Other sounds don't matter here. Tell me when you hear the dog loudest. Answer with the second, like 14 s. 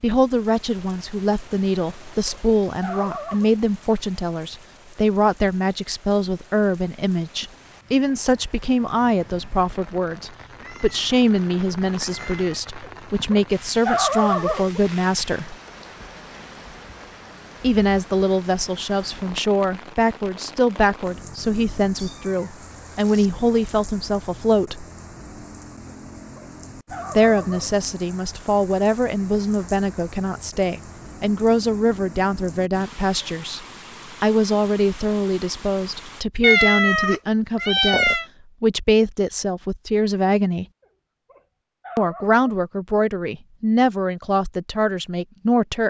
14 s.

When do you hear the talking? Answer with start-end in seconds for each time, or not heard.
0.0-15.6, 17.6-24.9, 27.1-33.6, 34.2-40.6, 42.0-45.8.